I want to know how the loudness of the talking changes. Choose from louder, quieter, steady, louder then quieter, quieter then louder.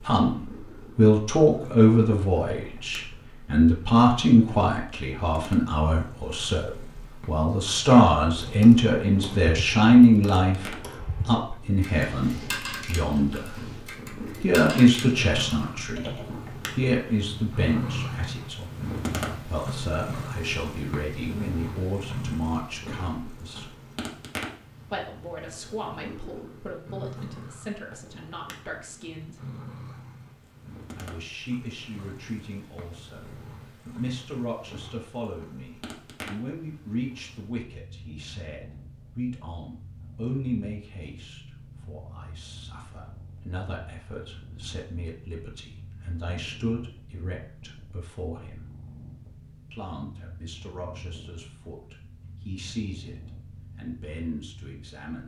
quieter.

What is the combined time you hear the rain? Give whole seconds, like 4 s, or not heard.
not heard.